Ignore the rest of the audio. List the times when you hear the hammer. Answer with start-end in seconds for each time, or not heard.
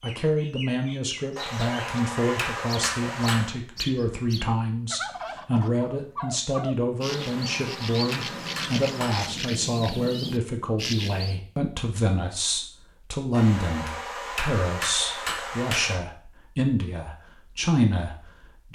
1.4-3.5, 7.0-9.3, 13.3-16.0.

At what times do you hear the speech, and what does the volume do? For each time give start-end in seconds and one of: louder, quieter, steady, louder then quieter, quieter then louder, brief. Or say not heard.
0.0-18.7 steady.